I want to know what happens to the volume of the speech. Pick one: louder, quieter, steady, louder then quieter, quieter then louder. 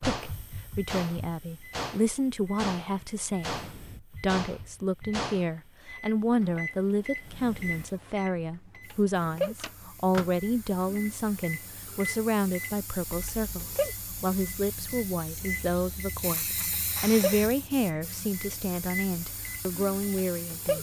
steady.